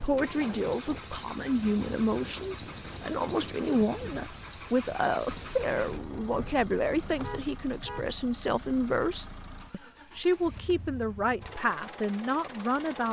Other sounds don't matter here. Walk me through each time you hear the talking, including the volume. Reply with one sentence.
You can hear the talking from 0.0 to 13.0 s, at a steady volume.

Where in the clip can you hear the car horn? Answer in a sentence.
The car horn can be heard from 7.2 to 8.2 s.